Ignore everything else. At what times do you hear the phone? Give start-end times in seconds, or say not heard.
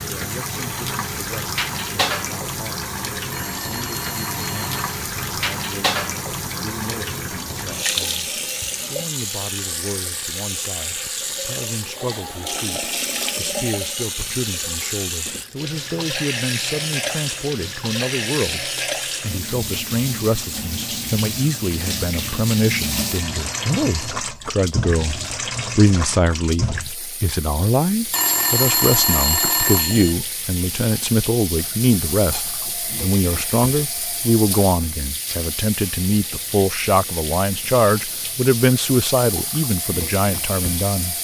3.3-5.0, 22.9-24.1, 28.1-30.1.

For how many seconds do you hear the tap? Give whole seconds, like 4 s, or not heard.
41 s.